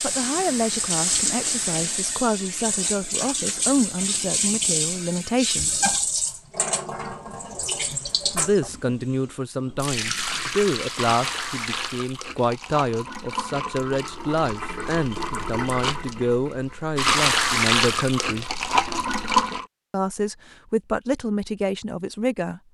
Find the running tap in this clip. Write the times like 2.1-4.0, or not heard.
0.0-19.6.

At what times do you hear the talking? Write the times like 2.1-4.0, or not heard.
0.0-5.8, 8.3-18.4, 19.9-22.6.